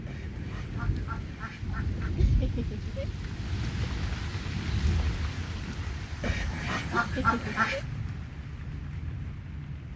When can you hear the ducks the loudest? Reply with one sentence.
The volume of the ducks peaks at 7 seconds.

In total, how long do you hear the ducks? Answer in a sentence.
The ducks can be heard for 4 seconds in total.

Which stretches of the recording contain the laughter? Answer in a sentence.
The laughter can be heard from 2.1 to 3.0 s and from 7.0 to 7.8 s.